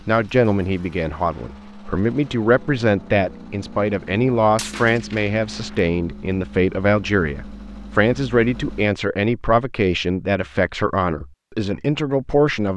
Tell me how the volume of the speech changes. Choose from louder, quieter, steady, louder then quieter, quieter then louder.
steady.